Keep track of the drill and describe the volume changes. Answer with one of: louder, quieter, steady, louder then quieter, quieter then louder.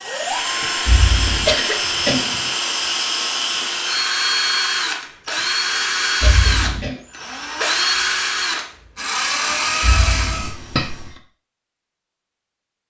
steady.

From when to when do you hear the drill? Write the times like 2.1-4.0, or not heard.
0.0-10.6.